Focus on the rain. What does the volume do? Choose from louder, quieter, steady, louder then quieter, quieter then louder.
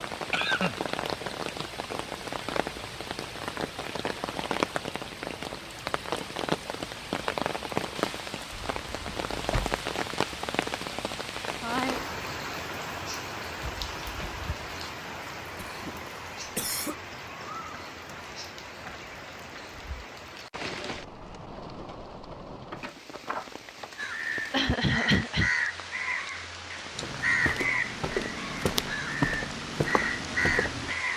quieter.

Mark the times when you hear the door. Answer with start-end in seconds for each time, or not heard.
8.5-9.8, 22.7-23.9.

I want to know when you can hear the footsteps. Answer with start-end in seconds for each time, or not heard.
26.9-30.9.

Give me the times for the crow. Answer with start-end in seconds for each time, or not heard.
23.9-31.1.